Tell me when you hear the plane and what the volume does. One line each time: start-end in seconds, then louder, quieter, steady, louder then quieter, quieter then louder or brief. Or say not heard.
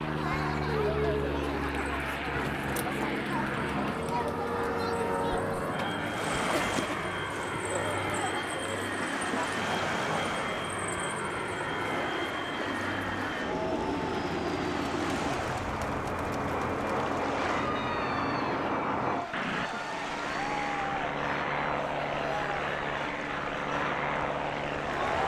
0.0-25.2 steady.